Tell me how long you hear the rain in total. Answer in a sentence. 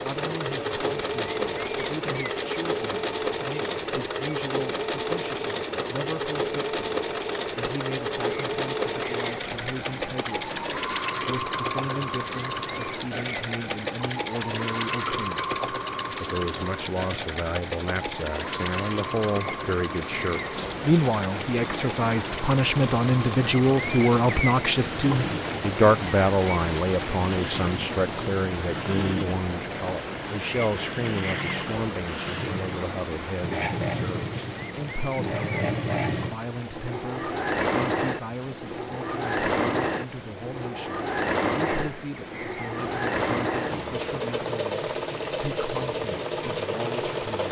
You can hear the rain for 47 seconds altogether.